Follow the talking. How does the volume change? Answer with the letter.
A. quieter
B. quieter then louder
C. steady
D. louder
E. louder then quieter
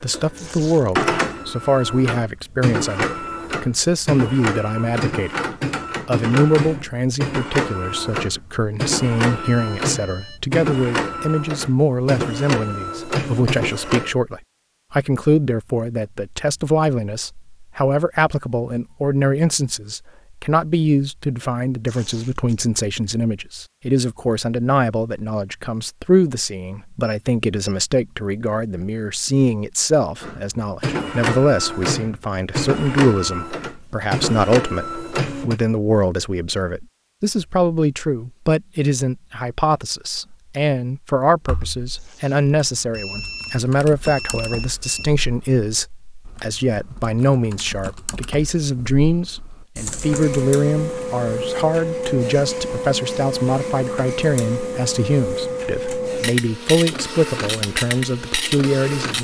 C.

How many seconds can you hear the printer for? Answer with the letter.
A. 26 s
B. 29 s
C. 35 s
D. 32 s
B.